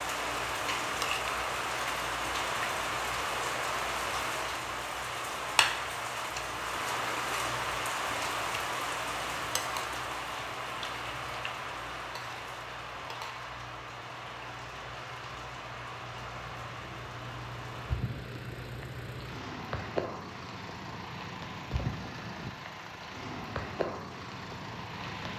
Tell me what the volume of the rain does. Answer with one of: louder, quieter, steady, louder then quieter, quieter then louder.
quieter.